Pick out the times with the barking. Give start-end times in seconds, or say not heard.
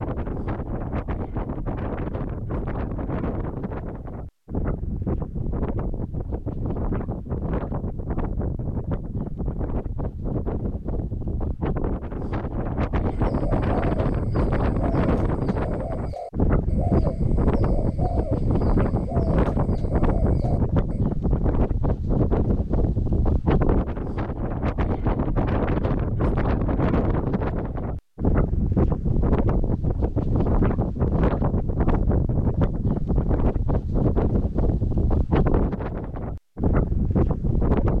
not heard.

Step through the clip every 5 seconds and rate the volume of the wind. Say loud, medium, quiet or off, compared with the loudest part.
medium, medium, loud, loud, loud, loud, loud, loud.